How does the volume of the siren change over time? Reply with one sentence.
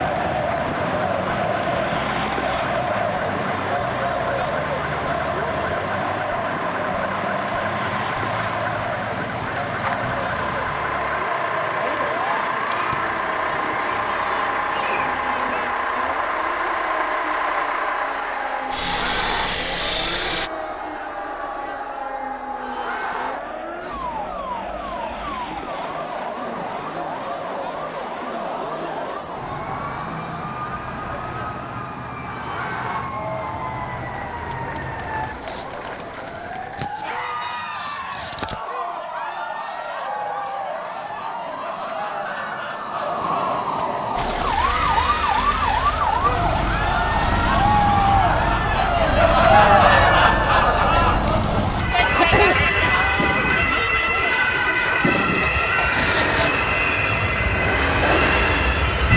The loudness of the siren goes up.